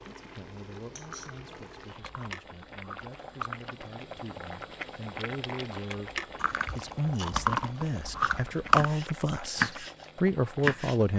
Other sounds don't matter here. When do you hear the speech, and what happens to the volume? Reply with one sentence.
The speech can be heard from 0.0 to 11.1 s, getting louder.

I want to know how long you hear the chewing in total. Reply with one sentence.
The chewing can be heard for 5 seconds in total.